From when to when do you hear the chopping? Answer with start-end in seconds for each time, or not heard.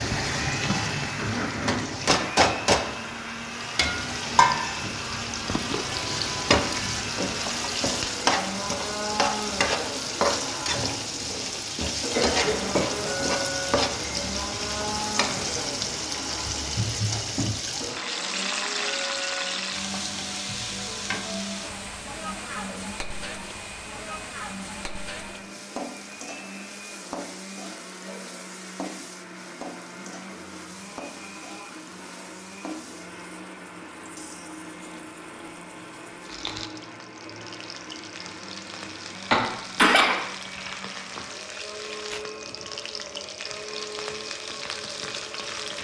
not heard.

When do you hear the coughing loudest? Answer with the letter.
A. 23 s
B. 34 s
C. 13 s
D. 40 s
D.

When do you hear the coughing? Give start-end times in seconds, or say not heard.
12.1-13.3, 39.3-40.7.